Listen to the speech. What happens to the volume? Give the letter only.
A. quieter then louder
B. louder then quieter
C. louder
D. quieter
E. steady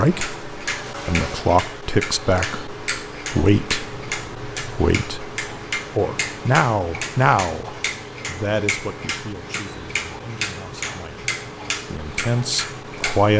A.